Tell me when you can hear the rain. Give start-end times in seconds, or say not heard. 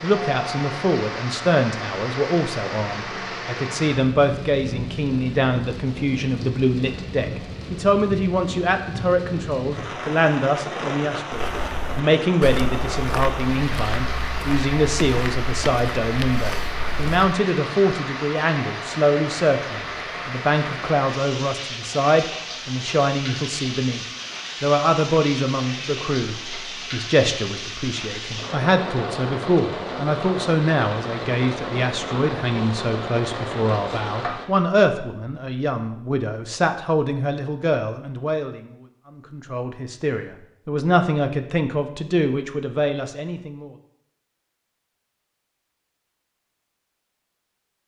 0.0-34.5.